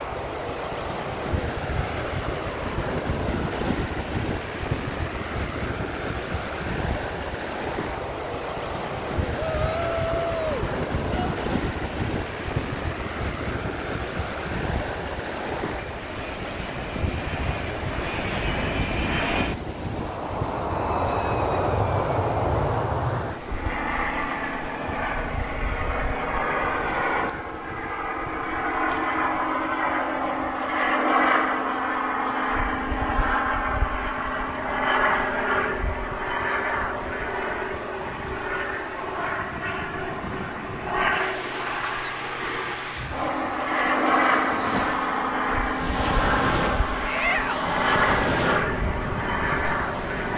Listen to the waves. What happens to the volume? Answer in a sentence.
The loudness of the waves goes down, then up.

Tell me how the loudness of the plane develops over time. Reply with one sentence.
The loudness of the plane goes up.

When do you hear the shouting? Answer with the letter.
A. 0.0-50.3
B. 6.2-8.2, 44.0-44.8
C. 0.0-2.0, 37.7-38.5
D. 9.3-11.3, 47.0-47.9
D.